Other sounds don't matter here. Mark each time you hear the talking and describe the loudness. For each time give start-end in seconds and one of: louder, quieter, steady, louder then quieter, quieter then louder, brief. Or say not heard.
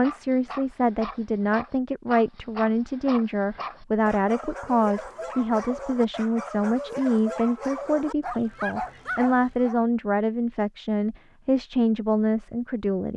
0.0-13.1 steady.